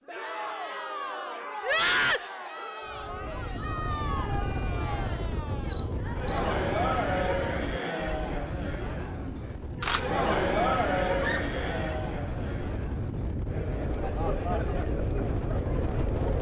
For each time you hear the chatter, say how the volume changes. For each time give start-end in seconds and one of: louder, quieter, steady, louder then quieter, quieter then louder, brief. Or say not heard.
0.1-16.3 louder then quieter.